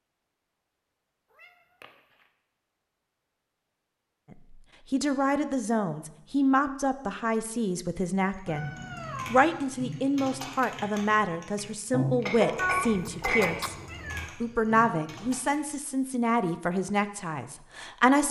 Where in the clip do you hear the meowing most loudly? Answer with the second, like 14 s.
13 s.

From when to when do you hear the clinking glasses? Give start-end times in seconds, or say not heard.
12.2-13.7.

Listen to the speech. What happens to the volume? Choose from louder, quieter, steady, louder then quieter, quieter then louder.
steady.